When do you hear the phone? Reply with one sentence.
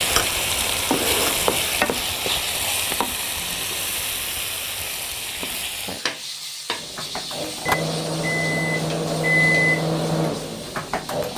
The phone can't be heard in this clip.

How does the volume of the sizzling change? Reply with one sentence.
The volume of the sizzling goes down.